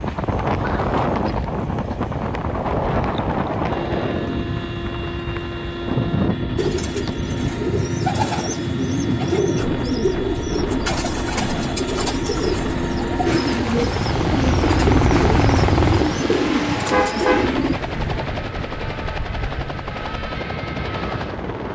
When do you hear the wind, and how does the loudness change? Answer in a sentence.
The wind can be heard from 0.0 to 21.7 s, getting quieter.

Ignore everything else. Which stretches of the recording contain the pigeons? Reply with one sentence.
You can hear the pigeons from 6.5 to 17.8 s.